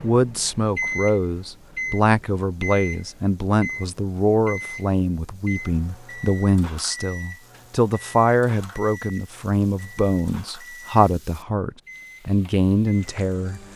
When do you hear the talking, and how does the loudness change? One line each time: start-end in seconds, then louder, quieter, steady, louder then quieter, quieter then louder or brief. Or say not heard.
0.0-13.6 steady.